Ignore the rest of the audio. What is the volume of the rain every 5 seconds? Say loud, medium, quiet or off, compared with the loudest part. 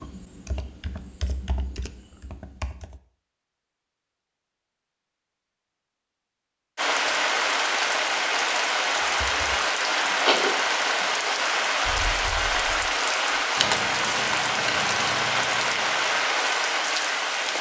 off, loud, loud, loud.